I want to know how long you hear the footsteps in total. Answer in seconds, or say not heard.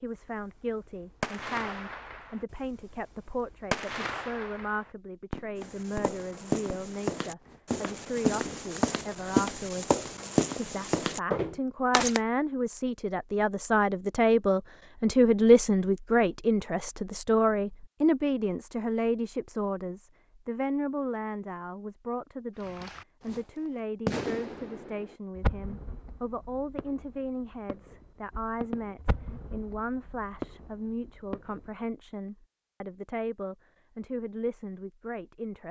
7 s.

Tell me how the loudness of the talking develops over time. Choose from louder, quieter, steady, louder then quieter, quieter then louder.
louder then quieter.